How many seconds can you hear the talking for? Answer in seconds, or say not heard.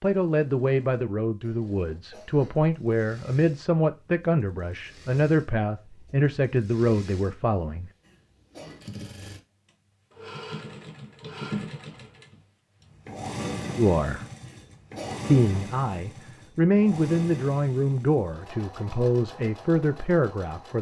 14 s.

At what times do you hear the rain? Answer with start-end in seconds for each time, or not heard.
not heard.